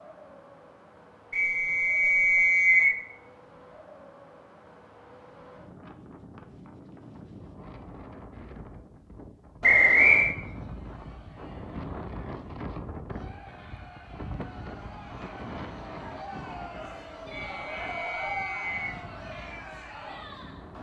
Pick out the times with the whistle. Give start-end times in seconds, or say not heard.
1.3-3.0, 9.6-10.3, 17.4-19.0.